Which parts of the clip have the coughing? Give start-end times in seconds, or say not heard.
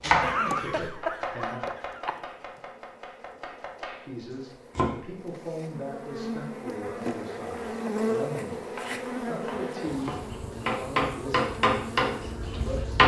0.2-2.2.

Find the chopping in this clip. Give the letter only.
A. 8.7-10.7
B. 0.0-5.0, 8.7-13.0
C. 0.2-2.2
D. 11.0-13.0
B.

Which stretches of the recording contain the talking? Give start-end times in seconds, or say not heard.
0.0-1.6, 4.0-13.0.